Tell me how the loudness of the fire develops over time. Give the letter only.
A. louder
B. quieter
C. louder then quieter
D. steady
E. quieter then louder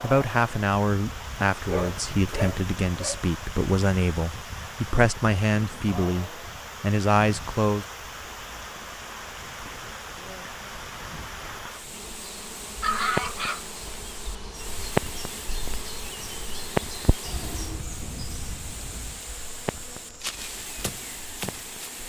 C.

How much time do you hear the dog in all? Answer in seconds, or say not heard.
3 s.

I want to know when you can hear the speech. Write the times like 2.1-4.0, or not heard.
0.0-7.8.